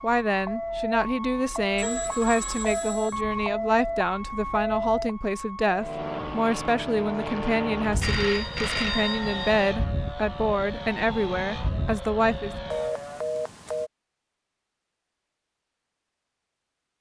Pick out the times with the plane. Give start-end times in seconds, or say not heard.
5.8-12.9.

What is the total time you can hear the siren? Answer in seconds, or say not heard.
13 s.